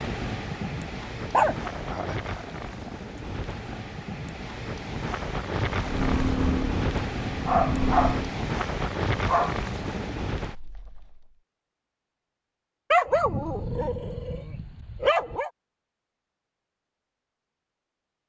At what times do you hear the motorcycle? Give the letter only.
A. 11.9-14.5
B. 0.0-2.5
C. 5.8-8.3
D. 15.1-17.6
C.